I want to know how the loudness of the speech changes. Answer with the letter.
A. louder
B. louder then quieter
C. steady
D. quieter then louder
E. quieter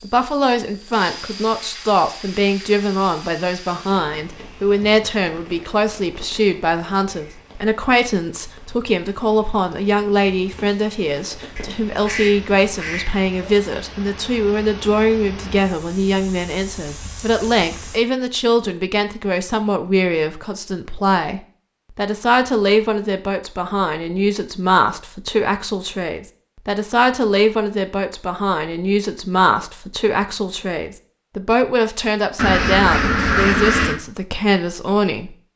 C.